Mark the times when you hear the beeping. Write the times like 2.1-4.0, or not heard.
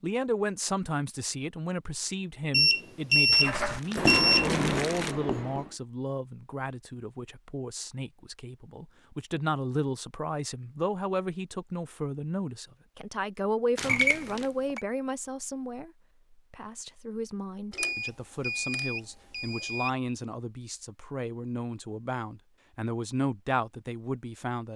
2.5-4.5, 13.8-14.8, 17.8-19.9.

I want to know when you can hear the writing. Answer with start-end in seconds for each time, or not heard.
3.4-5.8.